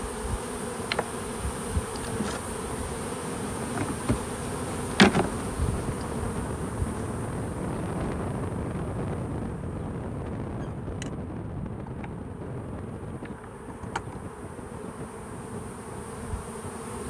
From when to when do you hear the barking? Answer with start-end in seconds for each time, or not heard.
not heard.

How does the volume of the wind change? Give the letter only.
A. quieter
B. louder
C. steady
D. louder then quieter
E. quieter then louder
D.